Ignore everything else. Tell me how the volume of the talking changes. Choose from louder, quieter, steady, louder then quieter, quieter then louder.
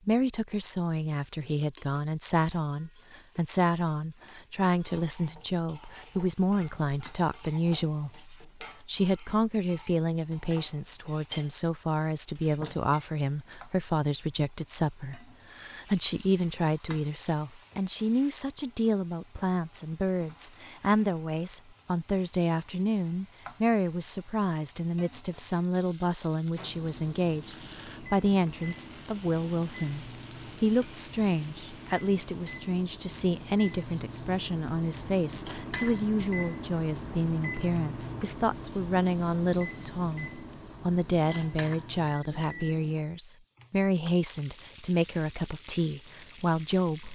steady.